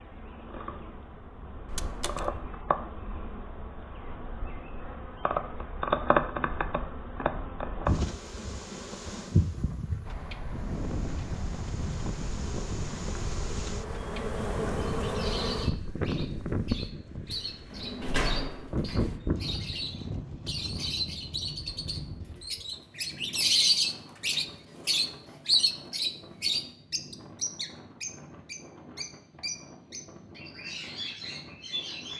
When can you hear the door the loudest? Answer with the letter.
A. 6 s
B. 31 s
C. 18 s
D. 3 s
C.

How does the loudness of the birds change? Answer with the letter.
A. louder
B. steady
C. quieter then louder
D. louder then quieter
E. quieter
D.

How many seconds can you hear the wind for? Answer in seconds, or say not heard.
22 s.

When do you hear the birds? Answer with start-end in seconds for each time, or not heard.
15.0-32.1.